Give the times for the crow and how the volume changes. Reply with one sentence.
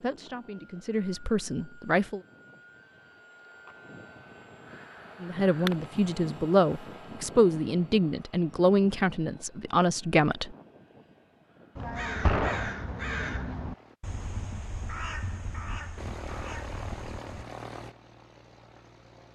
The crow can be heard from 11.8 to 17.4 s, getting quieter.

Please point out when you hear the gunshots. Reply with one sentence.
The gunshots can be heard from 12.2 to 12.7 s.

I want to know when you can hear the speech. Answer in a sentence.
You can hear the speech from 0.0 to 2.2 s and from 5.2 to 10.6 s.